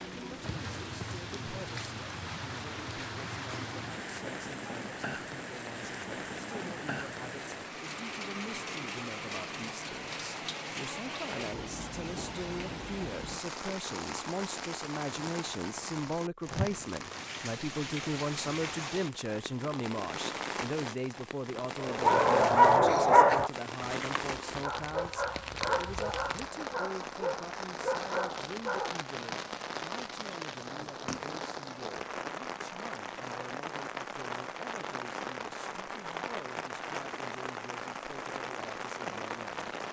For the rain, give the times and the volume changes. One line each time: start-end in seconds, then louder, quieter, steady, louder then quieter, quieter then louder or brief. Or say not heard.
0.0-39.8 steady.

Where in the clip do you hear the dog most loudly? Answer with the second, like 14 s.
23 s.